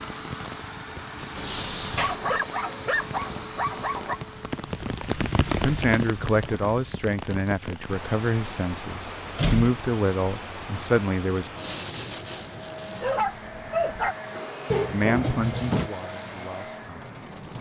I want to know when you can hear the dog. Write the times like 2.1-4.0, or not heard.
1.9-4.2, 13.0-14.2.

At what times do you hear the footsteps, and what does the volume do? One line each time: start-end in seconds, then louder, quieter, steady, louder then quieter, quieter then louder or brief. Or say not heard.
not heard.